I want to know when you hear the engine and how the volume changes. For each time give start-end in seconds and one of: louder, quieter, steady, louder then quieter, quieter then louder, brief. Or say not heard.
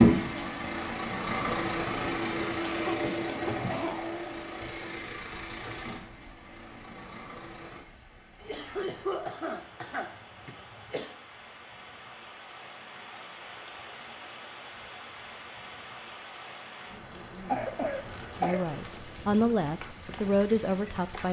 0.0-7.8 quieter.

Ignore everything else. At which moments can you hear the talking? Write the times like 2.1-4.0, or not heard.
18.4-21.2.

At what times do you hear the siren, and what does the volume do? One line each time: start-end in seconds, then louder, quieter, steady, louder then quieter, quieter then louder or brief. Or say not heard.
not heard.